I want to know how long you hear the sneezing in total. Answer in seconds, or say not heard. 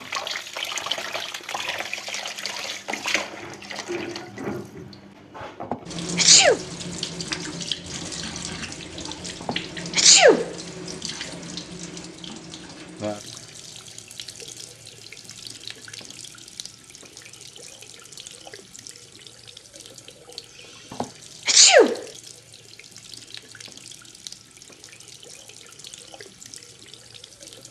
3 s.